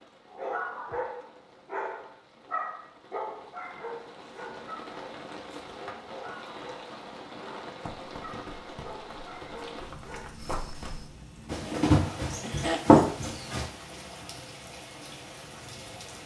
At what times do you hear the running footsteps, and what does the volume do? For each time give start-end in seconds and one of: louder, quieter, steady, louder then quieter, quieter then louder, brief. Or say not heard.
7.8-13.7 louder.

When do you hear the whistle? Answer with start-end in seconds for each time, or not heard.
not heard.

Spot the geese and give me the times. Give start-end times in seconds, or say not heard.
not heard.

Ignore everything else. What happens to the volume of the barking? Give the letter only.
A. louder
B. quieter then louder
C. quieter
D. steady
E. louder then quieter
C.